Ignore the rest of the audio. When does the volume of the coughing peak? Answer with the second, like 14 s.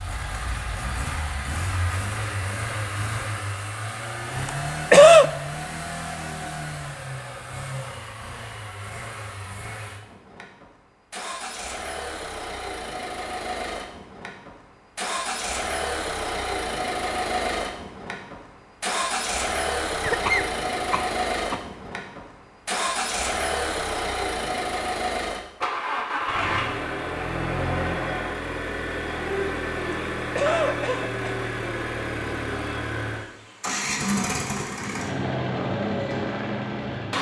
5 s.